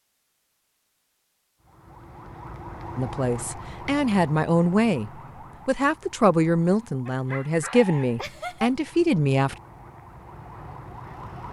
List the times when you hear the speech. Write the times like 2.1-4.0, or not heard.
3.0-9.6.